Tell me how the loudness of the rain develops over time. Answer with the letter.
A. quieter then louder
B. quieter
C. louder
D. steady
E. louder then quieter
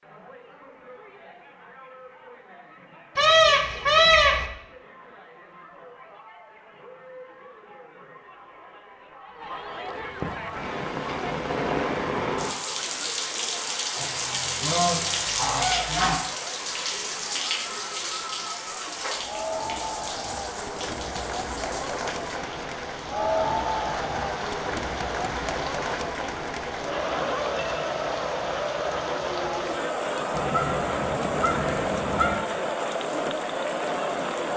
B.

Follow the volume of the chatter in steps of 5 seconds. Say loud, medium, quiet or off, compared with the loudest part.
quiet, quiet, medium, medium, loud, loud, loud.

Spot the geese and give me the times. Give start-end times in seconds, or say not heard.
3.1-4.5, 13.9-16.1, 30.3-32.4.